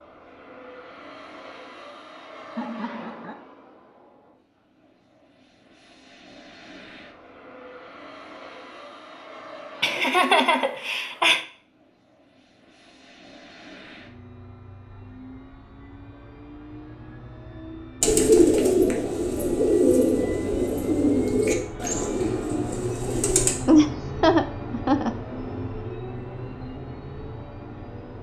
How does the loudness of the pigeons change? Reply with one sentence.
The loudness of the pigeons goes down.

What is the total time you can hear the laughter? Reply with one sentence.
The laughter can be heard for 4 seconds in total.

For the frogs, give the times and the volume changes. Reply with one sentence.
The frogs can't be heard in this clip.